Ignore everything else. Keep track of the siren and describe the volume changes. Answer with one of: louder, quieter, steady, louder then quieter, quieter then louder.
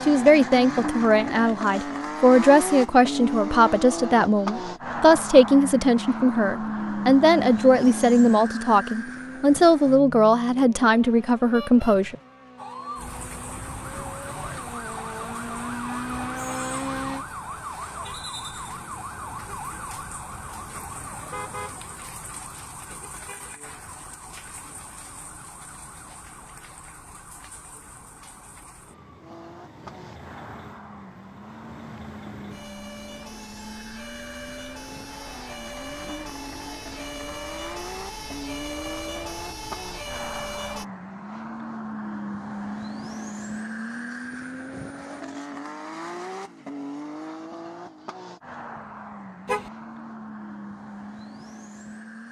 quieter then louder.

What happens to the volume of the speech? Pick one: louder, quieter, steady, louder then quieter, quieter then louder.
steady.